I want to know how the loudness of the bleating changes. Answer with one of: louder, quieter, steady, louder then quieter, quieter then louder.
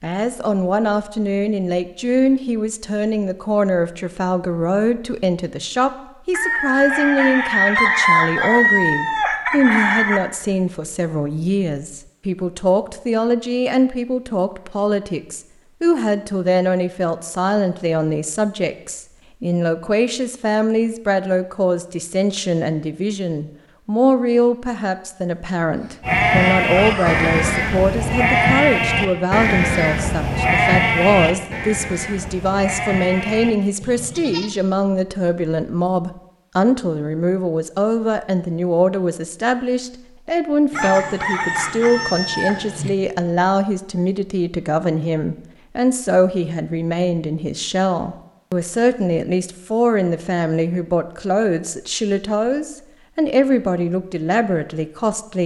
quieter.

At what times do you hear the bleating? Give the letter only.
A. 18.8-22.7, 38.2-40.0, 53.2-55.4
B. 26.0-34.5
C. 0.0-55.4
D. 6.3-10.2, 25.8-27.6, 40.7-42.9
B.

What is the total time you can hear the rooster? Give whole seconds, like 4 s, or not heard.
8 s.